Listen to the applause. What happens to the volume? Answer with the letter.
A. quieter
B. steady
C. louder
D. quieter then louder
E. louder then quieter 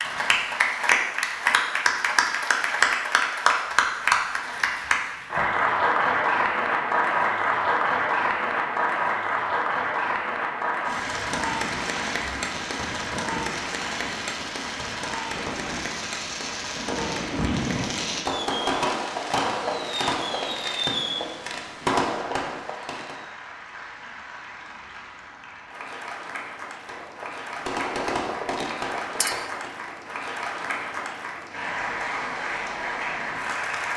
D.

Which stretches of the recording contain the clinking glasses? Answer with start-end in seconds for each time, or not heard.
29.2-29.6.